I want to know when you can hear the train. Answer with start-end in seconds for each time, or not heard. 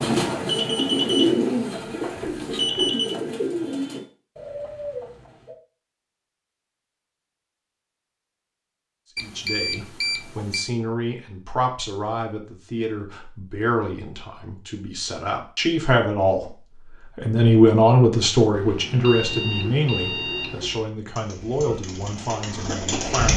not heard.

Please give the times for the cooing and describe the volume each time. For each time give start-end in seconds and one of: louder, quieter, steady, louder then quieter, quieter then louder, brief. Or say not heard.
0.0-5.5 quieter
21.1-23.3 brief.